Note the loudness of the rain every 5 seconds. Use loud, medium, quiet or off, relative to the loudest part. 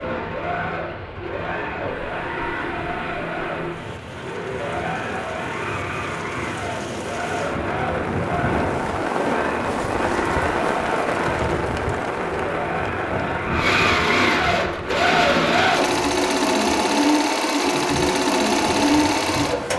medium, loud, loud, medium.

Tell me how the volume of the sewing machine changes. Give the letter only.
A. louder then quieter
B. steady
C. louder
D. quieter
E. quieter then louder
C.